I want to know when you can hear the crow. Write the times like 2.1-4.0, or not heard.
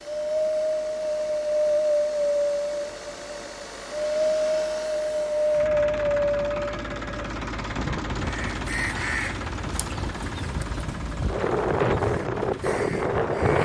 8.2-13.6.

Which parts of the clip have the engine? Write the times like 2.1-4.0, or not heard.
0.0-13.4.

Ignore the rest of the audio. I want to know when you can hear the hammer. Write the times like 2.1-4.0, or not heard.
not heard.